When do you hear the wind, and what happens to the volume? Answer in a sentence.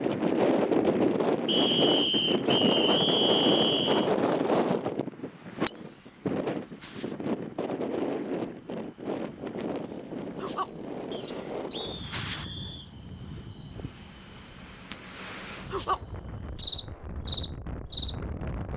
The wind can be heard from 0.0 to 18.7 s, getting quieter.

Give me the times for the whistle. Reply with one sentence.
The whistle can be heard from 1.4 to 4.1 s and from 11.1 to 12.9 s.